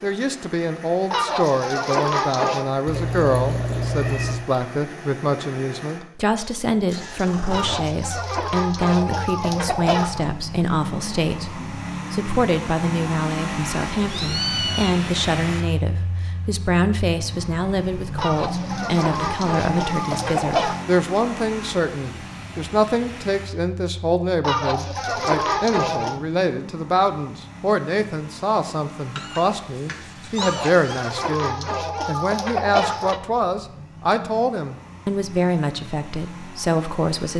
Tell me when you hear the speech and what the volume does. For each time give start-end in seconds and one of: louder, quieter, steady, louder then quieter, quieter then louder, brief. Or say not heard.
0.0-37.3 steady.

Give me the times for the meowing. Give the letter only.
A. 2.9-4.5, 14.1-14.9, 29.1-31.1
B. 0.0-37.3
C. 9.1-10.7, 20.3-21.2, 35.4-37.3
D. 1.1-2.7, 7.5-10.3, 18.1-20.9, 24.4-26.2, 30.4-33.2
A.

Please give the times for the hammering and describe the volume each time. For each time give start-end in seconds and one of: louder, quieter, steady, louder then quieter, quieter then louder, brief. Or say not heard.
not heard.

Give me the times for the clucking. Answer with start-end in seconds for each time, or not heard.
1.1-2.7, 7.5-10.3, 18.1-20.9, 24.4-26.2, 30.4-33.2.